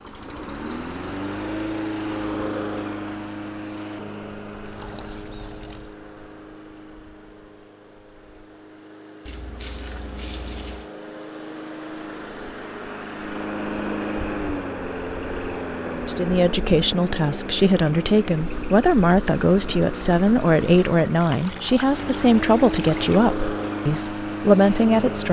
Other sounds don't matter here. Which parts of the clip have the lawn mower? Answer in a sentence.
You can hear the lawn mower from 0.0 to 25.2 s.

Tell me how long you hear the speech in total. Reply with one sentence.
You can hear the speech for 9 seconds altogether.